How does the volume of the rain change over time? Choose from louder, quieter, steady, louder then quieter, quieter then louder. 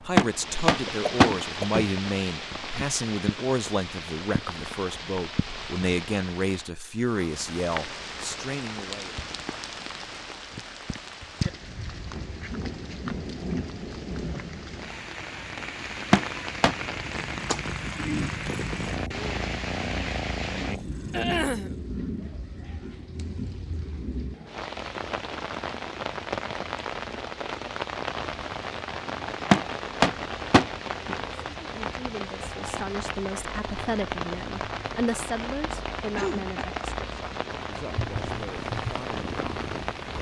steady.